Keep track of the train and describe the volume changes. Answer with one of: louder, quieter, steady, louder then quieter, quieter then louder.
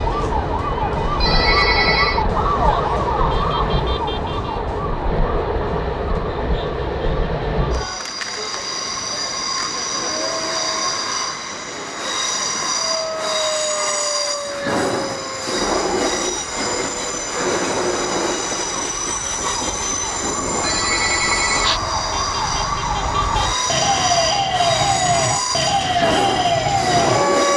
steady.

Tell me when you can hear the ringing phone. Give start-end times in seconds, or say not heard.
1.2-2.2, 20.6-21.8.